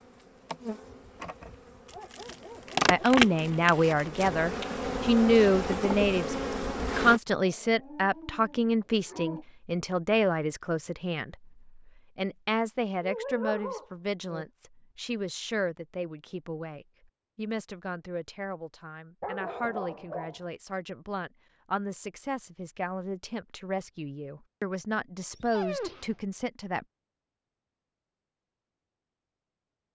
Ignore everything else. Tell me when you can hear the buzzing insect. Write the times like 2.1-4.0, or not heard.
0.0-7.2.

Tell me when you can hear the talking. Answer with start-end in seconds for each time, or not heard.
2.9-6.3, 7.0-26.9.